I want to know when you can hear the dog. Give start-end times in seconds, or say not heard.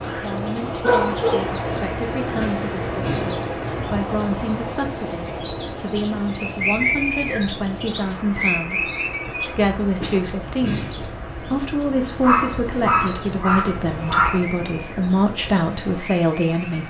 0.0-1.4, 12.2-14.4.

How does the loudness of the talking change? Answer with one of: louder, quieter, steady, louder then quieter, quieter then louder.
louder.